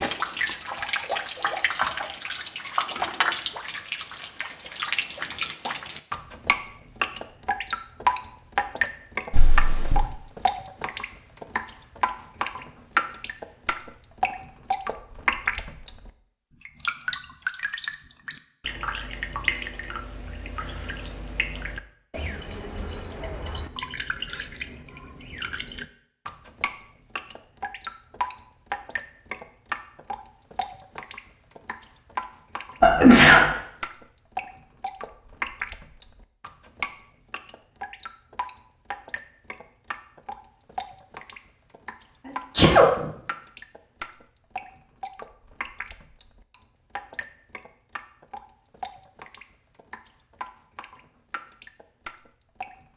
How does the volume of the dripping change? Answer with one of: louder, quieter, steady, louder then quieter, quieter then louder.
quieter.